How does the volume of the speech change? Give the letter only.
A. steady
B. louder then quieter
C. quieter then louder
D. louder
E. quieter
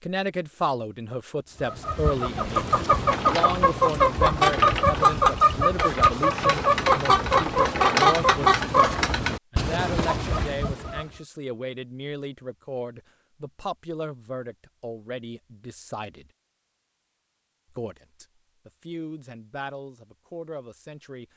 E.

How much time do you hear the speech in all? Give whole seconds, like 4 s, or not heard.
20 s.